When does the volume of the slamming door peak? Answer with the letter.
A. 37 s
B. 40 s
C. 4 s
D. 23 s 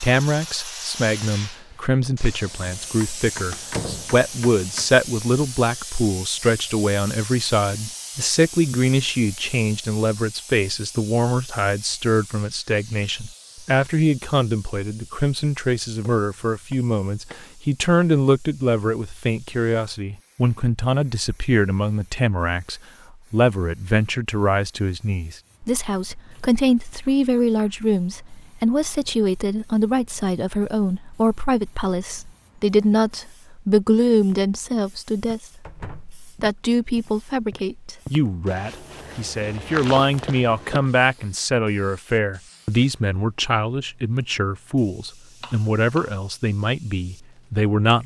C.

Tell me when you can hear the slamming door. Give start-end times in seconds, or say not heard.
3.5-4.2, 35.6-36.2.